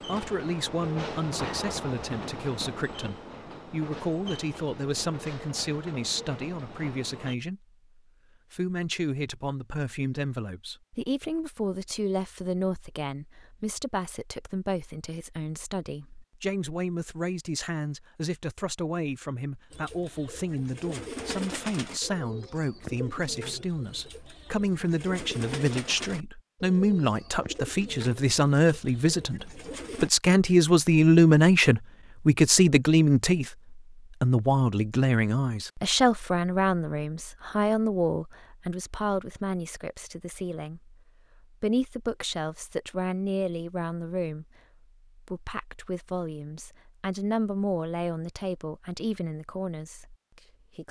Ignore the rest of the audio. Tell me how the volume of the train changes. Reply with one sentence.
The loudness of the train goes down.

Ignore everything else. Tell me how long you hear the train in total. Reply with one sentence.
The train can be heard for 7 seconds in total.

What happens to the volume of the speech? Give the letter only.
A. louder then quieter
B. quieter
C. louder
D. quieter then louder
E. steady
A.